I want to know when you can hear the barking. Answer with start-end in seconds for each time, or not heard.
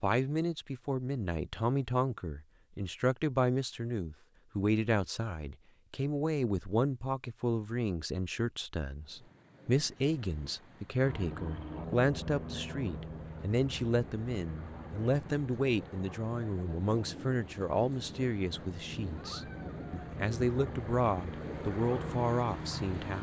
not heard.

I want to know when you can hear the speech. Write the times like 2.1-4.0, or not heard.
0.0-23.1.